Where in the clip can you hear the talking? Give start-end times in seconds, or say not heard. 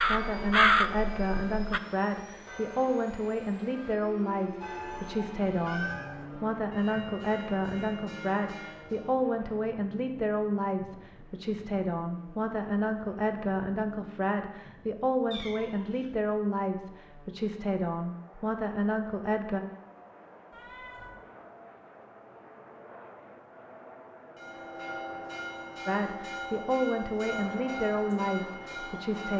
0.0-19.6, 25.9-29.3.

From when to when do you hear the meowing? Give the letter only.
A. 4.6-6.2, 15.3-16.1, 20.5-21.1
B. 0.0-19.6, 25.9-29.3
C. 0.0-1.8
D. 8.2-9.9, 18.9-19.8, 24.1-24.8
A.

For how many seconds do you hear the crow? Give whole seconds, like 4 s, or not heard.
2 s.